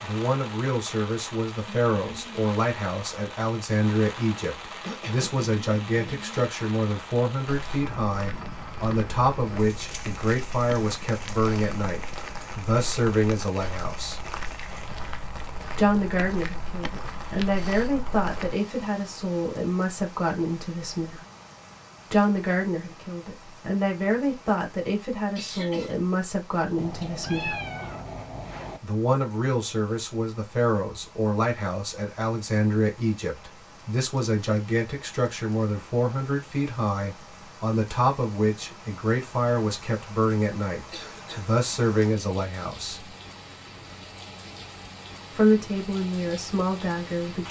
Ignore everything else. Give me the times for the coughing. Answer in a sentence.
You can hear the coughing from 4.8 to 6.2 s, from 25.4 to 25.9 s and from 40.9 to 41.5 s.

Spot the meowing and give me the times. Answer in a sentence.
You can hear the meowing from 26.8 to 28.8 s.